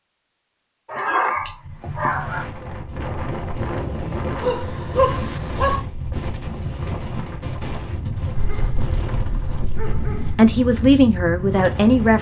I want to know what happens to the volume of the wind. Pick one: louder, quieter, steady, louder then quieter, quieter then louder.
steady.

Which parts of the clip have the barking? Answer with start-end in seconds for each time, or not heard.
0.8-2.5, 4.3-5.8, 8.3-10.3.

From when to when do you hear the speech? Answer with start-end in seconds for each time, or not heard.
10.3-12.1.